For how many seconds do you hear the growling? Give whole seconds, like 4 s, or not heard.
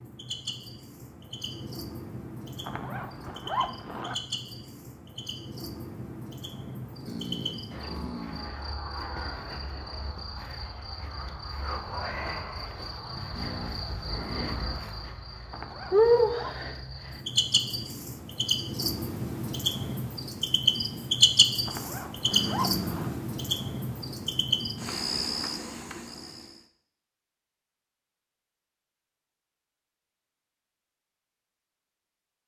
4 s.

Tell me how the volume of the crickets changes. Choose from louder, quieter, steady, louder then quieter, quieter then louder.
louder.